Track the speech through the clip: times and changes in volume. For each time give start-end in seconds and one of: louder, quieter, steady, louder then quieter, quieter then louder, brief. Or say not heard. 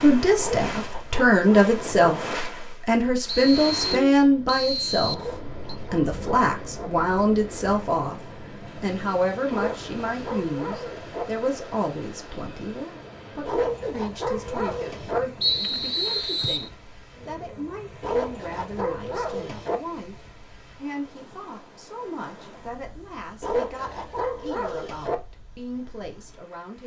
0.0-26.8 quieter.